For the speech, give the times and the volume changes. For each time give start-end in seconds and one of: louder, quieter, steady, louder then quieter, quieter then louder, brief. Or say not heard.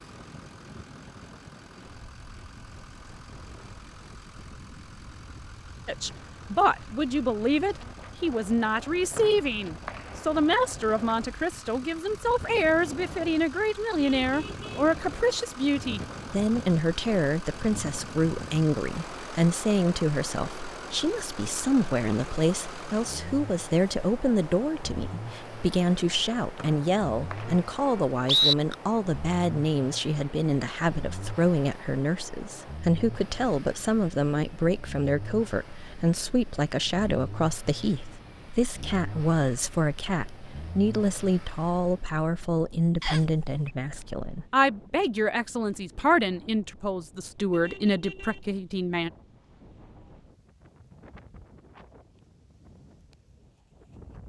5.8-49.1 steady.